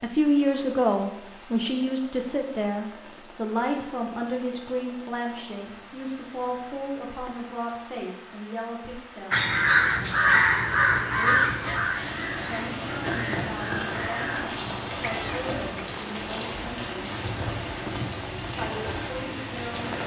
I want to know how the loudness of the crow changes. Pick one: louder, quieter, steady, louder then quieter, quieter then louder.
quieter.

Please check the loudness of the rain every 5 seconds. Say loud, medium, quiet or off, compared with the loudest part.
quiet, quiet, loud, loud.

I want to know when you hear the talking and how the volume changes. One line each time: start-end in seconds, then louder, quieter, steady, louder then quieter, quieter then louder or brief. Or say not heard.
0.0-9.6 quieter
11.2-17.1 steady
18.6-20.0 brief.